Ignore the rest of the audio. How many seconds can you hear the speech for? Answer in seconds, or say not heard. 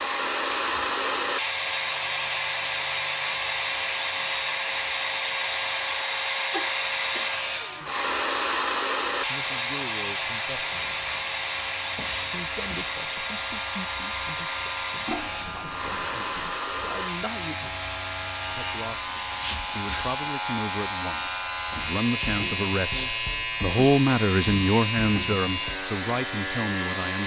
16 s.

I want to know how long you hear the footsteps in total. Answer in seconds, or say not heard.
not heard.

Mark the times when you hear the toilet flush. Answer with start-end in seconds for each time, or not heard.
6.5-7.2, 15.1-16.6.